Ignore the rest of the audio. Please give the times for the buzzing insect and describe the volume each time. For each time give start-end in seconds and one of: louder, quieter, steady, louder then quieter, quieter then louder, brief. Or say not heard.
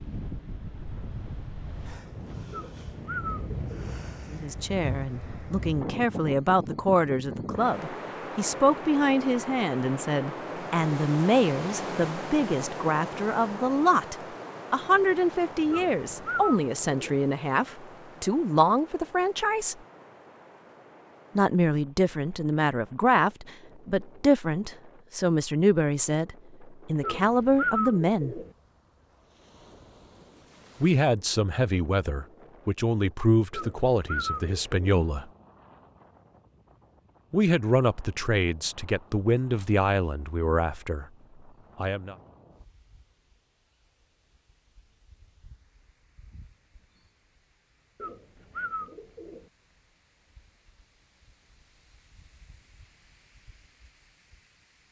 not heard.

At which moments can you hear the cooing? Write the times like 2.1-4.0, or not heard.
2.5-4.0, 15.7-17.2, 27.0-28.5, 33.5-34.8, 48.0-49.5.